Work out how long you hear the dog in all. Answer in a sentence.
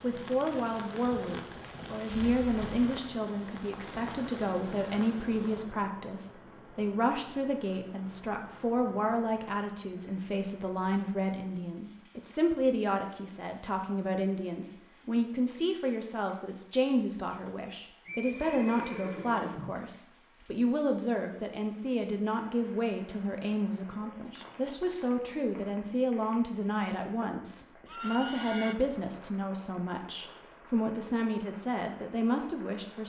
You can't hear the dog here.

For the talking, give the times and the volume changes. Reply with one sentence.
The talking can be heard from 0.0 to 33.0 s, at a steady volume.